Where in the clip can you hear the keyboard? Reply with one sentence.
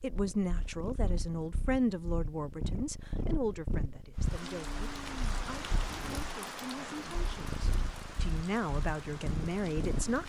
You can't hear the keyboard here.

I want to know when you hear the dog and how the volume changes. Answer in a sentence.
You can't hear the dog here.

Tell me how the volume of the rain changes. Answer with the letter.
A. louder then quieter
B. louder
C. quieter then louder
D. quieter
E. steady
D.